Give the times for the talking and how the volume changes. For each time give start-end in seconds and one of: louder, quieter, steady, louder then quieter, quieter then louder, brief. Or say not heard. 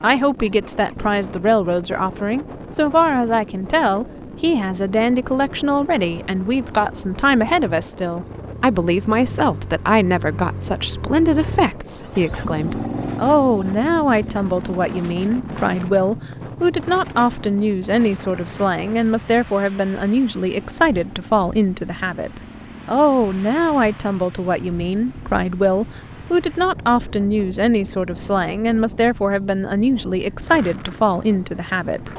0.0-32.1 steady.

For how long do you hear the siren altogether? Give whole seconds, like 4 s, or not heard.
not heard.